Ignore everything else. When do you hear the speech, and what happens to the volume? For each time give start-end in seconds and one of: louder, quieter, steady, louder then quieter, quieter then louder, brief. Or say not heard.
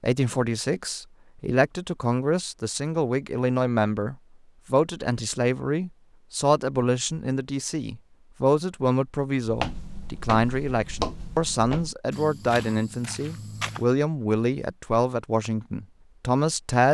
0.0-16.8 steady.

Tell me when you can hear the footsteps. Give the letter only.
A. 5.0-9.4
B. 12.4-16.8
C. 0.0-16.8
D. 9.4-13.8
D.